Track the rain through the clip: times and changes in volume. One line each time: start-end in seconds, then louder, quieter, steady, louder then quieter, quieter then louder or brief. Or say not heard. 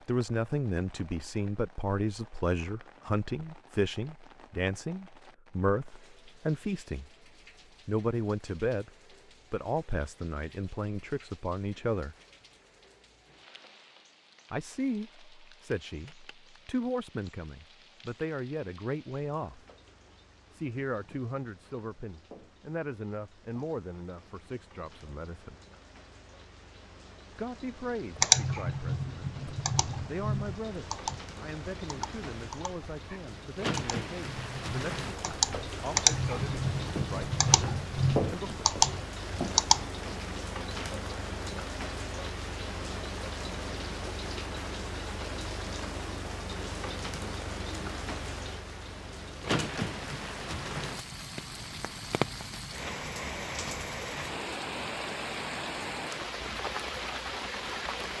0.0-58.1 louder.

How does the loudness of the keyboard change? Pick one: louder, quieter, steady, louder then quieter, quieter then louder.
quieter then louder.